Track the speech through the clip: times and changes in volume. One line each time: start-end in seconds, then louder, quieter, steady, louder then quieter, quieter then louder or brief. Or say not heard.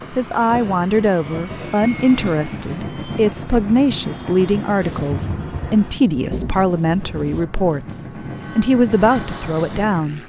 0.1-10.2 steady.